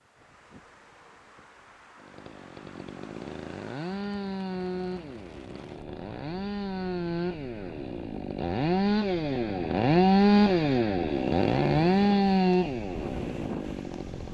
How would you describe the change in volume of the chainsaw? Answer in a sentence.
The loudness of the chainsaw goes up.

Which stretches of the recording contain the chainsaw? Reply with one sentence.
The chainsaw can be heard from 2.0 to 14.2 s.